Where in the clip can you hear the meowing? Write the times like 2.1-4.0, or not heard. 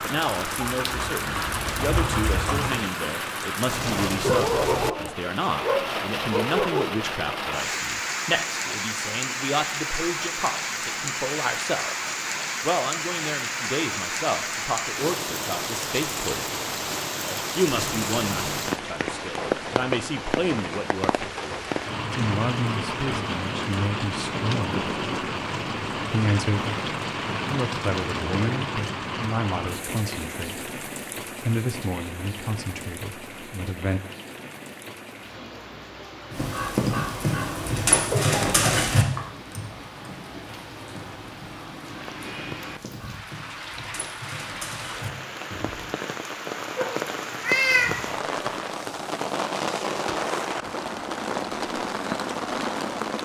17.6-18.6, 46.8-48.0.